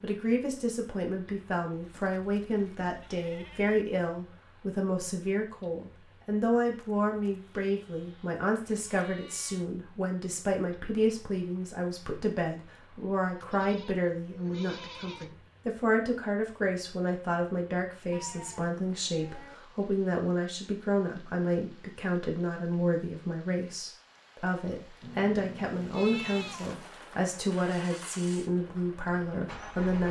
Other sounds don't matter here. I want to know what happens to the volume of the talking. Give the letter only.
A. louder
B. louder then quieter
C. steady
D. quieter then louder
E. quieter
C.